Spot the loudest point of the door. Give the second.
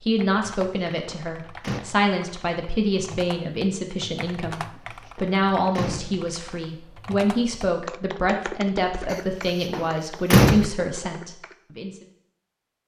10 s.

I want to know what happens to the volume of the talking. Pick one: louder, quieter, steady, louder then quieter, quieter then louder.
steady.